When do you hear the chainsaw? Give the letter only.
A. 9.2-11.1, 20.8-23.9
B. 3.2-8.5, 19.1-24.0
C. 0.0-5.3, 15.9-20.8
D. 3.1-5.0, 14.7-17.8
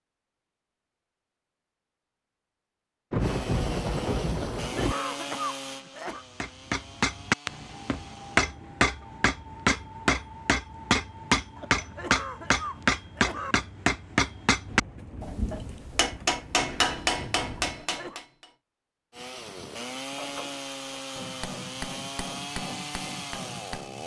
B.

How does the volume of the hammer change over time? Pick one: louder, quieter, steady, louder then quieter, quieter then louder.
quieter.